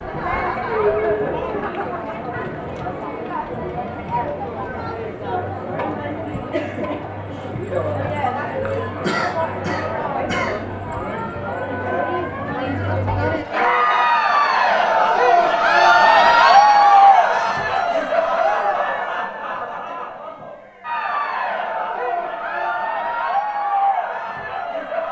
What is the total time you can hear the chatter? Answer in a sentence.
You can hear the chatter for 25 seconds altogether.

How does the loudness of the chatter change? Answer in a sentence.
The volume of the chatter goes up, then down.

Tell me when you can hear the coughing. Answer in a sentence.
You can hear the coughing from 9.0 to 10.7 s.